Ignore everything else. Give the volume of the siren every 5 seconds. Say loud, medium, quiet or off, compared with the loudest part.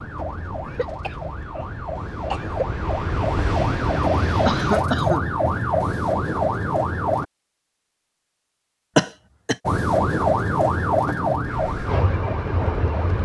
medium, loud, loud.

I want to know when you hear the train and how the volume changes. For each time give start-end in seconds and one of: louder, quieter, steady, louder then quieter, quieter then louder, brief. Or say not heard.
0.0-4.9 louder
11.4-13.1 brief.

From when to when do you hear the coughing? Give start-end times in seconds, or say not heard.
0.7-2.6, 4.5-5.2, 8.9-9.6.